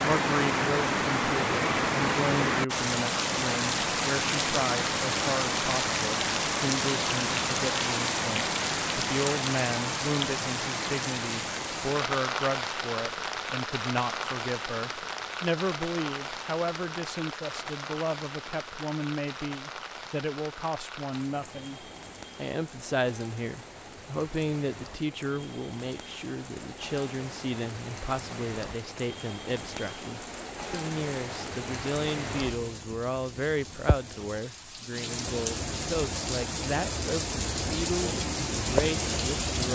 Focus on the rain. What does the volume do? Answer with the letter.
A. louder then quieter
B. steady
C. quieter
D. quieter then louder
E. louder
D.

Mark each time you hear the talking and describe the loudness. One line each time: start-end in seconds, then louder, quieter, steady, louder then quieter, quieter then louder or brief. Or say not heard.
0.0-39.6 steady.